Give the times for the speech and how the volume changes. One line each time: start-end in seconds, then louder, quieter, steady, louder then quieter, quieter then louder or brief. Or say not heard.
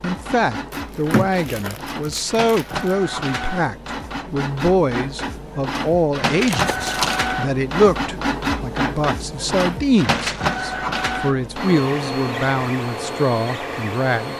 0.0-14.3 steady.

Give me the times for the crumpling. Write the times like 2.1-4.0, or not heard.
0.7-3.0, 6.5-7.2, 10.2-10.6.